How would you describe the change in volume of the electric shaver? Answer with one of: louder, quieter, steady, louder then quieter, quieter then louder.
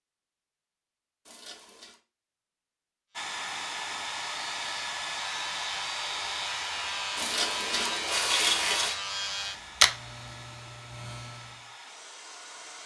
louder then quieter.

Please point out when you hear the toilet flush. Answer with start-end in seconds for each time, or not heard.
1.2-2.0, 7.2-8.9.